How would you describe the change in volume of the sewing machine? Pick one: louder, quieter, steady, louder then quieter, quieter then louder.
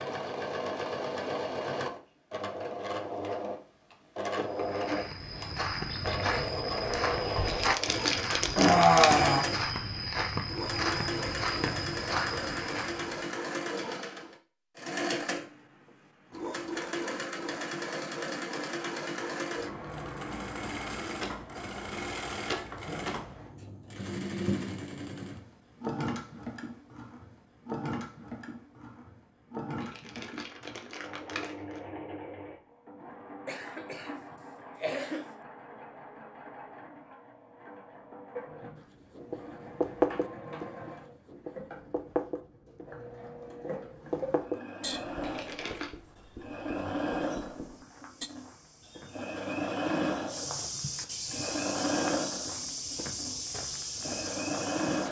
quieter then louder.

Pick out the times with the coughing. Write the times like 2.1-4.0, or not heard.
8.6-9.5, 33.5-35.4.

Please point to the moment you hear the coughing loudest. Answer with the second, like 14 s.
9 s.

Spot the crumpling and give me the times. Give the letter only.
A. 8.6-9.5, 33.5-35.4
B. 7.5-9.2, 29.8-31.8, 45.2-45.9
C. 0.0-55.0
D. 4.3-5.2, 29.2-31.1
B.